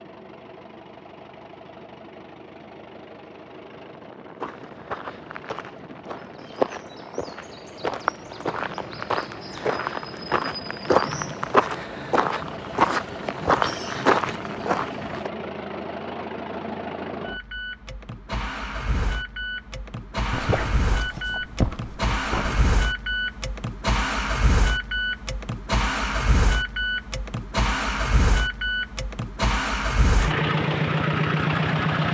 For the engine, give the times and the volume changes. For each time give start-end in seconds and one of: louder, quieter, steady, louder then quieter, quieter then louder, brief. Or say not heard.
0.0-32.0 louder.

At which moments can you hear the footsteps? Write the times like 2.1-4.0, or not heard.
4.4-15.3.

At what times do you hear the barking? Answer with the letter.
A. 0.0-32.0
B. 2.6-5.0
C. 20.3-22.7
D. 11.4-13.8
C.